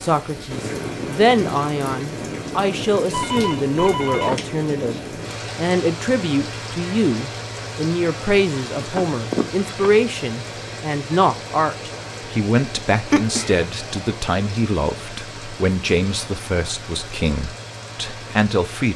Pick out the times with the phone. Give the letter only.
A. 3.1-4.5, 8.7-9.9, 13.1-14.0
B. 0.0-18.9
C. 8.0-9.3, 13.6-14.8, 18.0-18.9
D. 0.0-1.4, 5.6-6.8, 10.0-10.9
A.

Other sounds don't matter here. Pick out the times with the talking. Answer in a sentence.
The talking can be heard from 0.0 to 18.9 s.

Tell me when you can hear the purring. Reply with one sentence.
You can't hear the purring here.